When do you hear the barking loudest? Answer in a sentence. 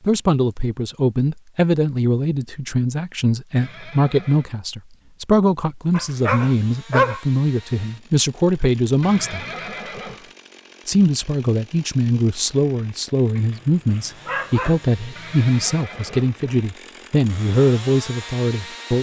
The loudest moment of the barking is at 7 seconds.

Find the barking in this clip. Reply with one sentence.
The barking can be heard from 5.9 to 7.2 s and from 13.3 to 14.9 s.